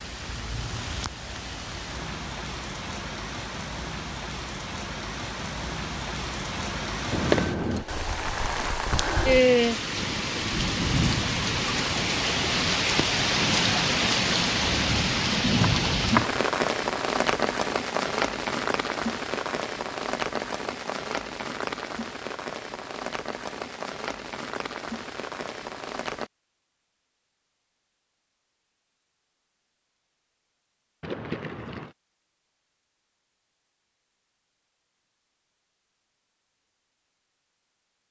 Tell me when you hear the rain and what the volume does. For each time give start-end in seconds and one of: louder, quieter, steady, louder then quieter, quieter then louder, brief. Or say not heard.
0.0-26.3 louder then quieter.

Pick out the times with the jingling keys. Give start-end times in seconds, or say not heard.
7.1-7.8, 15.7-16.4, 31.0-31.9.